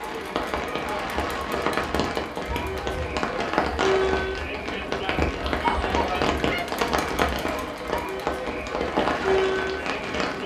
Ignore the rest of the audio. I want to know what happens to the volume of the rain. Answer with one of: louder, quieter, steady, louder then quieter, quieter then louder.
steady.